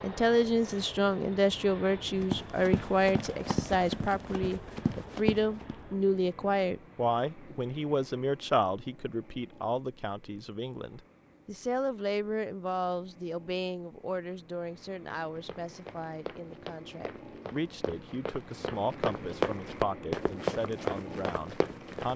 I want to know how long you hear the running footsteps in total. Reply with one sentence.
The running footsteps can be heard for 10 seconds in total.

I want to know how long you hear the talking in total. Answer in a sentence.
The talking can be heard for 22 seconds in total.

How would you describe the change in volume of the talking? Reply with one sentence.
The loudness of the talking goes down.